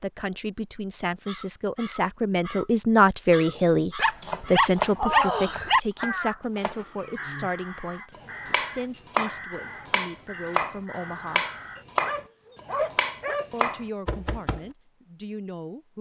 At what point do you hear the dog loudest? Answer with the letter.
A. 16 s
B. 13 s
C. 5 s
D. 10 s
C.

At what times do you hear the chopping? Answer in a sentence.
The chopping can be heard from 4.2 to 7.5 s and from 8.1 to 14.7 s.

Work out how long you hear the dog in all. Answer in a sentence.
The dog can be heard for 4 seconds in total.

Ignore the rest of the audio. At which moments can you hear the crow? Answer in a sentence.
The crow can be heard from 1.2 to 11.8 s.